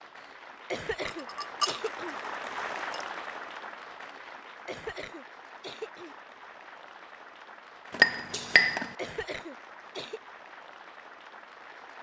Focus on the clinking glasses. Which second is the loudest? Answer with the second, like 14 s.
8 s.